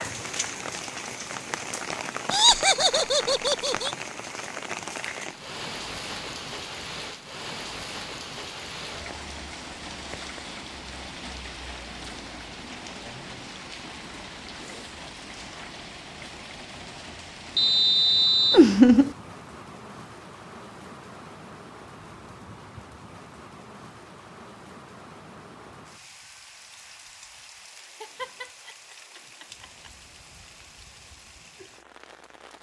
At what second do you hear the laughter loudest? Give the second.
19 s.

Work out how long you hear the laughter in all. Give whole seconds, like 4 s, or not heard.
4 s.